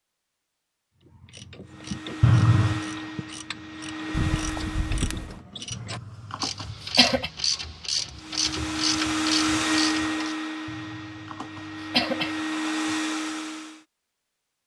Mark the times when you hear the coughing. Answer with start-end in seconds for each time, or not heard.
2.2-2.9, 5.7-7.3, 10.7-12.3.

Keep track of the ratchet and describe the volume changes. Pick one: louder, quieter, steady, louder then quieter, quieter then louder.
louder.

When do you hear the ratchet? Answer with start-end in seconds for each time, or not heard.
1.0-10.3.